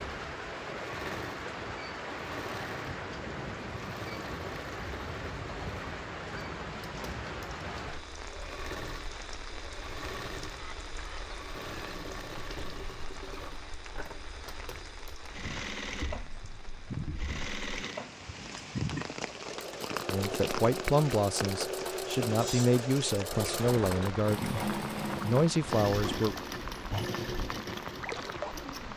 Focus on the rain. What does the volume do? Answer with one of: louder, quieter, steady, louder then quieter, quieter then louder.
quieter then louder.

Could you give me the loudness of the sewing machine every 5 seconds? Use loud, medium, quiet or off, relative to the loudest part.
medium, medium, medium, loud, loud, loud.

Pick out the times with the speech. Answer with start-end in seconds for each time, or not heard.
20.1-26.4.